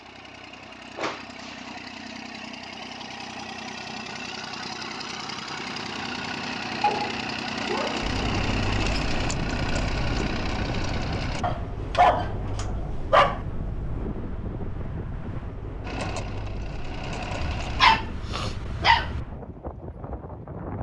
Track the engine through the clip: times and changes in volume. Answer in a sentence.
You can hear the engine from 0.0 to 11.4 s, getting louder; and briefly from 15.8 to 18.0 s.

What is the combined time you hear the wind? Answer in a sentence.
The wind can be heard for 13 seconds in total.